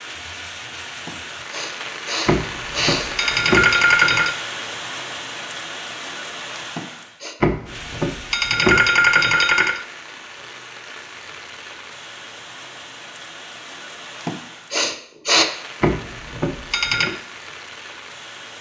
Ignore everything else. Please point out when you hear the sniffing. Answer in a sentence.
You can hear the sniffing from 1.1 to 3.1 s, from 6.8 to 7.3 s and from 14.2 to 15.4 s.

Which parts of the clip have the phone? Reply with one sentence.
The phone can be heard from 2.2 to 4.3 s, from 7.4 to 9.8 s and from 15.8 to 17.1 s.